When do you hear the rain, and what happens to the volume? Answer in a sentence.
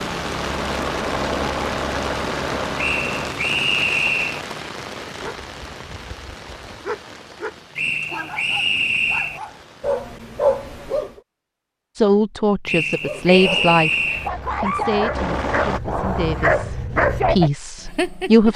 You can hear the rain from 0.0 to 10.1 s, getting quieter.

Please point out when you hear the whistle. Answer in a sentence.
The whistle can be heard from 2.8 to 4.4 s, from 7.8 to 9.4 s and from 12.7 to 14.3 s.